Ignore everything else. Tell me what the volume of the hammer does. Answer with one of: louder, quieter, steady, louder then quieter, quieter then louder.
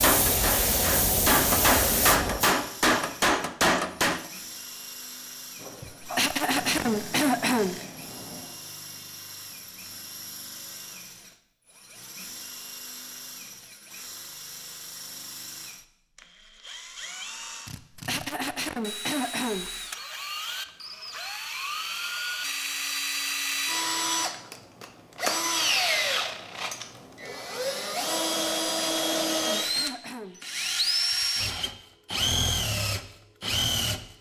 louder.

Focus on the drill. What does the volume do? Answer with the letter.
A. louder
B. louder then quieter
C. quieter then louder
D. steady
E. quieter
A.